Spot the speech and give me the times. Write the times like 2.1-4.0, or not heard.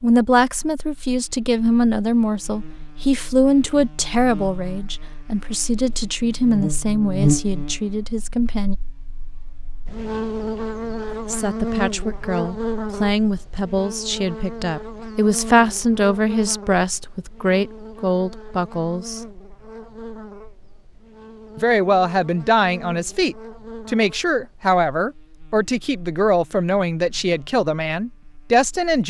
0.0-8.8, 11.1-19.3, 21.6-29.0.